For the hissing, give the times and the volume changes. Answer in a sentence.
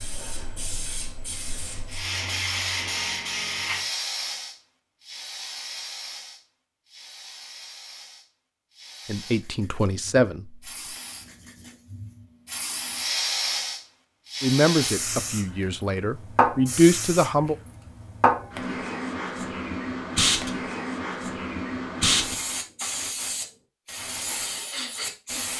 The hissing can be heard from 0.0 to 25.5 s, getting quieter then louder.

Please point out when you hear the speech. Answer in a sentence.
The speech can be heard from 9.1 to 10.7 s and from 14.4 to 17.6 s.